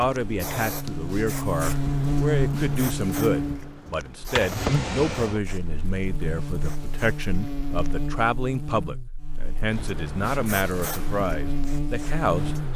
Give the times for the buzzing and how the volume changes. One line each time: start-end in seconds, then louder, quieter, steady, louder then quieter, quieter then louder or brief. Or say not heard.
0.1-12.7 quieter.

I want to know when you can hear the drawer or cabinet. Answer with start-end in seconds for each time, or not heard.
4.2-5.4.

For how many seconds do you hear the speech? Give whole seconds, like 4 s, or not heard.
13 s.